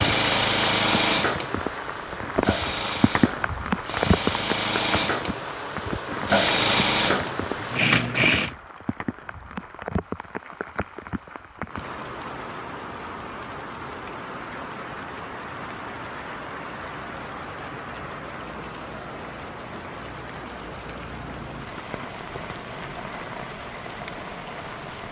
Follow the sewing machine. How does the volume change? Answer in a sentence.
The volume of the sewing machine goes down, then up.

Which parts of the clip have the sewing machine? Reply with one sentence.
You can hear the sewing machine from 0.0 to 8.5 s.